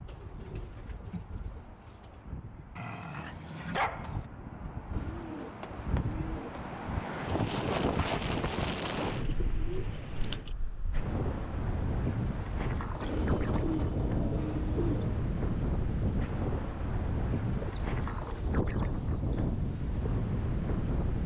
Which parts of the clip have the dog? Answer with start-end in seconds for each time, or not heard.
2.8-4.2.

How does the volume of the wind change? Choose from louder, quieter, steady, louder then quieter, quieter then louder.
louder.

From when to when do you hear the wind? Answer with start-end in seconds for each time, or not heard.
0.0-21.2.